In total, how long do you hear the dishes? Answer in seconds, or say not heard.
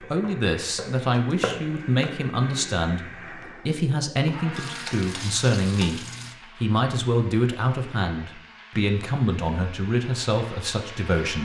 not heard.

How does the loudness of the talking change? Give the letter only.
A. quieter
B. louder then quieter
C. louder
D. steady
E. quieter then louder
D.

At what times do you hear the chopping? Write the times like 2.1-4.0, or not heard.
0.0-2.1.